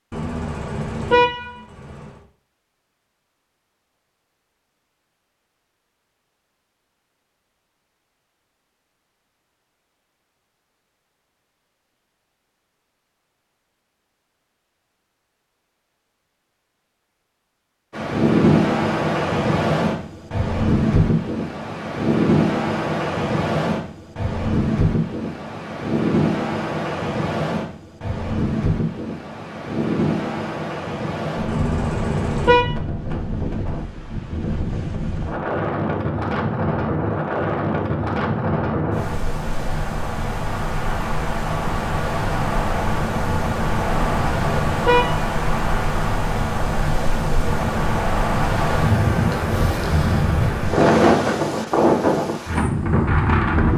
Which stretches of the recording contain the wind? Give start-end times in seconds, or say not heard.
17.9-53.7.